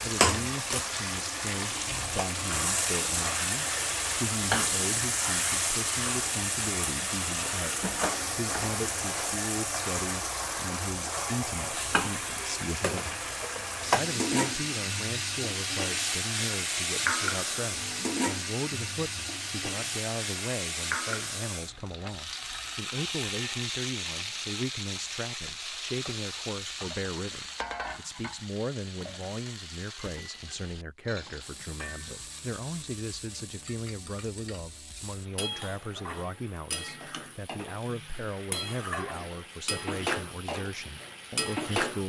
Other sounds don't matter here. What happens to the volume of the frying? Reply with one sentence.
The loudness of the frying goes down.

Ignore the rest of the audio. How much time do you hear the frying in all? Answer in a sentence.
The frying can be heard for 42 seconds in total.